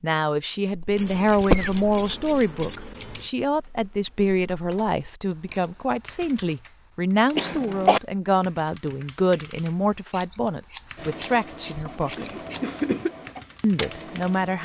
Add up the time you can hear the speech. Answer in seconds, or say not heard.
13 s.